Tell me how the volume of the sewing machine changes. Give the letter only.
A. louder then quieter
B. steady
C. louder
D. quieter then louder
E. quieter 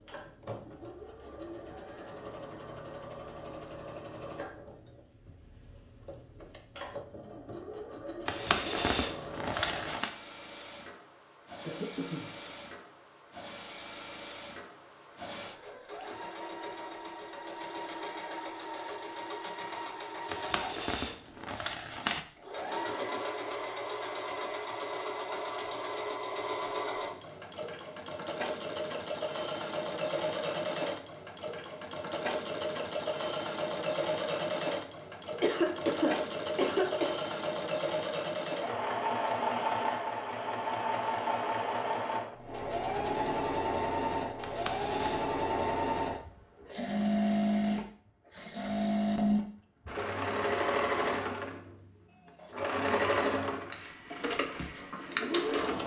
C.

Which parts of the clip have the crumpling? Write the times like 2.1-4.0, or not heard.
8.2-10.1, 20.3-22.2, 44.4-45.2.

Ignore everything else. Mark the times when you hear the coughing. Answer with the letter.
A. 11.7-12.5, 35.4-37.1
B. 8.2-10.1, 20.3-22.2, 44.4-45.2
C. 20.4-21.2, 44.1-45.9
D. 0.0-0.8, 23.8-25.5
A.